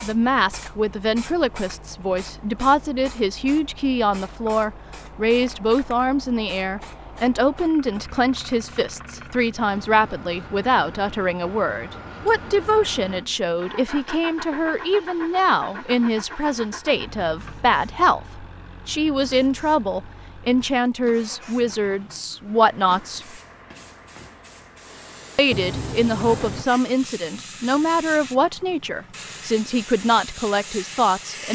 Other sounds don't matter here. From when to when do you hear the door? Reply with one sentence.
You can hear the door from 25.5 to 26.6 s.